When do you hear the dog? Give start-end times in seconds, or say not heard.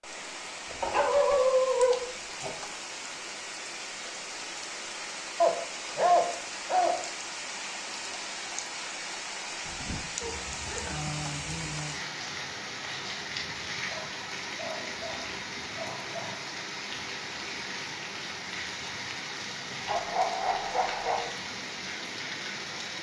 0.8-2.5, 5.4-7.0, 10.2-11.8, 13.8-16.4, 19.9-21.3.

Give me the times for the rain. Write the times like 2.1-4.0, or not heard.
0.0-22.9.